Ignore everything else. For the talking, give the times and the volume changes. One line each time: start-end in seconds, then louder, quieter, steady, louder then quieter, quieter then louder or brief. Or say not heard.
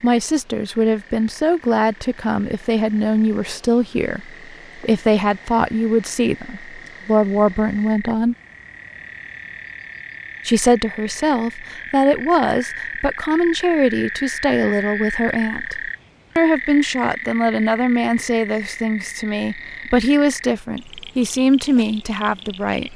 0.0-8.3 steady
10.4-22.9 steady.